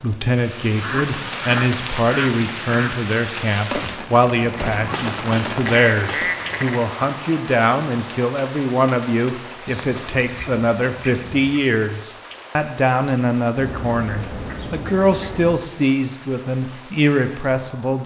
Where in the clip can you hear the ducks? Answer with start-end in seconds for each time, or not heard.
0.8-3.0, 4.5-6.8, 9.7-11.7, 13.6-15.6.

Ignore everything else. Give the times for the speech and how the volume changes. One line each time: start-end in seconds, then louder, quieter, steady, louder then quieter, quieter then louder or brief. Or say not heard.
0.0-18.0 steady.